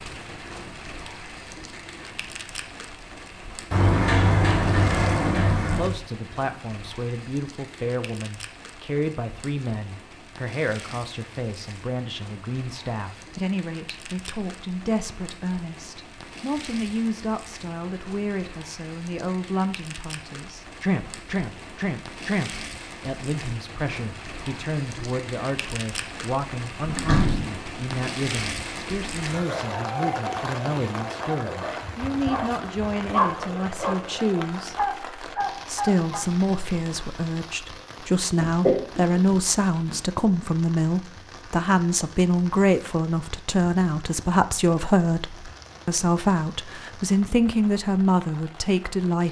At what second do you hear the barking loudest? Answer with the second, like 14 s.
33 s.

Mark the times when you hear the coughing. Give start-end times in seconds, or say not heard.
38.6-39.1.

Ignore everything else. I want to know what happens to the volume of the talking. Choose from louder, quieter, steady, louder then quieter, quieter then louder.
louder.